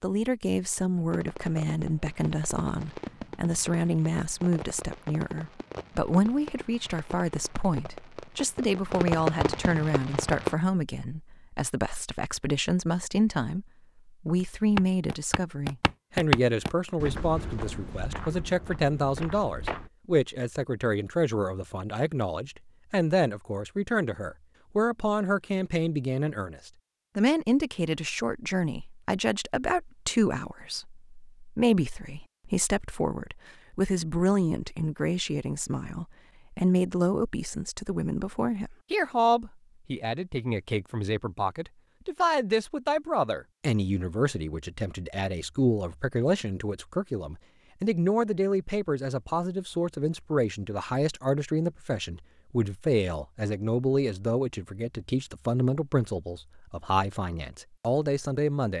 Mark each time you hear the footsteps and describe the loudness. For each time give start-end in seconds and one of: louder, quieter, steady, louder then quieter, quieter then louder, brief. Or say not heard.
14.4-19.9 louder then quieter.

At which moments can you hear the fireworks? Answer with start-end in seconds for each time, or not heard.
1.1-10.6.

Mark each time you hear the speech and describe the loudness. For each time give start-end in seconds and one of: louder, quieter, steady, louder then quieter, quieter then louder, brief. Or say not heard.
0.0-58.7 steady.